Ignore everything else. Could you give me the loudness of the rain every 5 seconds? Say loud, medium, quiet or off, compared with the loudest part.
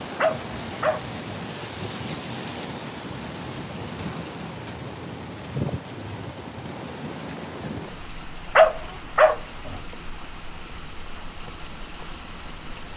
loud, loud, medium.